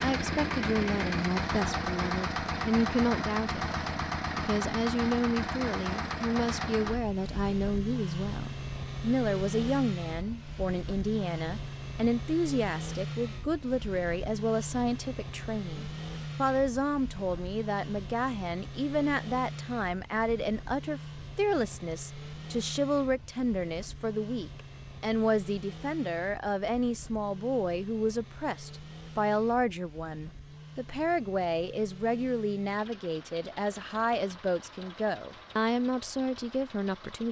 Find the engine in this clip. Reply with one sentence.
You can hear the engine from 0.0 to 37.2 s.